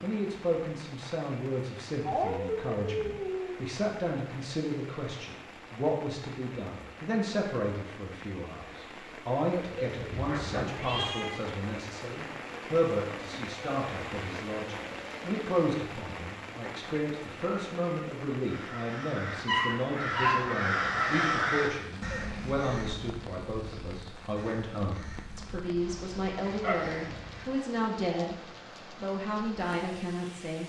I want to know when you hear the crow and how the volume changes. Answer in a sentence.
You can hear the crow from 18.4 to 27.5 s, getting louder then quieter.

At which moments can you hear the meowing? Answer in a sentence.
You can hear the meowing from 10.8 to 11.4 s.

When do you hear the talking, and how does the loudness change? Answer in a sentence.
The talking can be heard from 0.0 to 28.4 s, at a steady volume; and briefly from 28.9 to 30.6 s.